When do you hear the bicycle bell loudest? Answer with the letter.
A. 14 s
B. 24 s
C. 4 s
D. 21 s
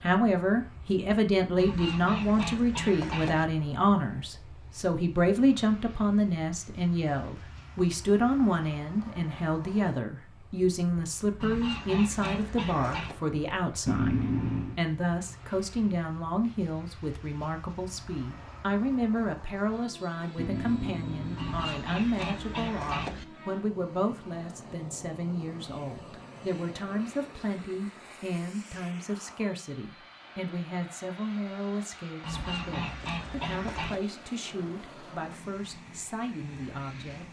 A.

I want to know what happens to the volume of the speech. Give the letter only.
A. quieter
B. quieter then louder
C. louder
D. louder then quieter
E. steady
A.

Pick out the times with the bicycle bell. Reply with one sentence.
The bicycle bell can be heard from 13.8 to 14.8 s and from 20.4 to 21.9 s.